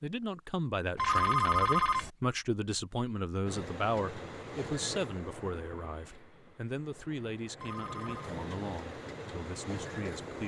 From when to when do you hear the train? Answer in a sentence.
You can hear the train from 3.5 to 10.4 s.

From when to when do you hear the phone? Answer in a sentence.
The phone can be heard from 0.9 to 2.1 s and from 7.5 to 8.3 s.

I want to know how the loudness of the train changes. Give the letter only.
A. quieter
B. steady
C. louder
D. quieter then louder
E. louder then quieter
D.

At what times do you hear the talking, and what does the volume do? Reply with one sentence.
The talking can be heard from 0.0 to 10.4 s, getting quieter.